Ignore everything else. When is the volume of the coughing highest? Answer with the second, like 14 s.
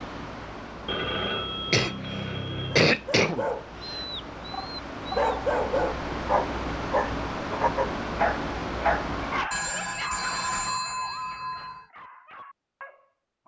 3 s.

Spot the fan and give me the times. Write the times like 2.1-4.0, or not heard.
0.0-9.5.